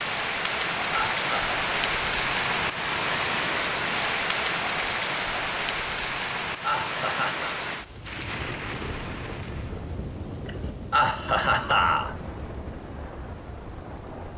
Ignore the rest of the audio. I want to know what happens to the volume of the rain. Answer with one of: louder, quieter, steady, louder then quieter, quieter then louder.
quieter.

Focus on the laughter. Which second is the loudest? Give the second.
12 s.